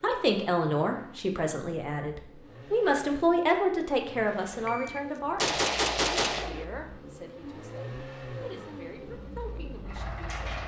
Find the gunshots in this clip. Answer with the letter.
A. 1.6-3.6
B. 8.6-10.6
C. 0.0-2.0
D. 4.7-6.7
D.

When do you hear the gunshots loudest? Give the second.
6 s.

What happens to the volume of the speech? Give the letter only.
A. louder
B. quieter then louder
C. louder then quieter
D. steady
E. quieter
E.